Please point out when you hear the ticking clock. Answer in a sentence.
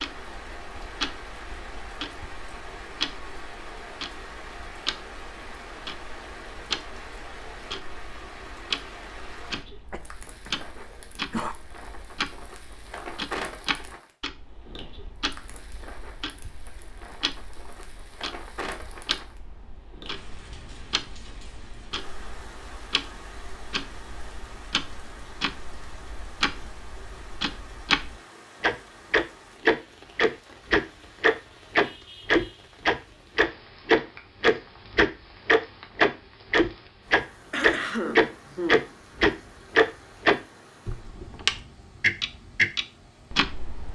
The ticking clock can be heard from 0.0 to 43.9 s.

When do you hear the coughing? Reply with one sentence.
You can hear the coughing from 9.9 to 11.6 s and from 37.5 to 38.9 s.